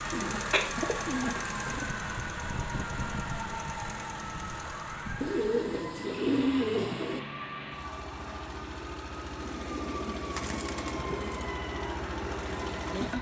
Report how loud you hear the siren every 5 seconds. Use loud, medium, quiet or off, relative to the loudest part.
loud, medium, medium.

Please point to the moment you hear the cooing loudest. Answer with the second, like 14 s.
6 s.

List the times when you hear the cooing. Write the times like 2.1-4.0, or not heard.
0.1-1.9, 5.2-7.2, 9.4-11.4.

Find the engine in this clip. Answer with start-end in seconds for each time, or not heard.
0.0-13.1.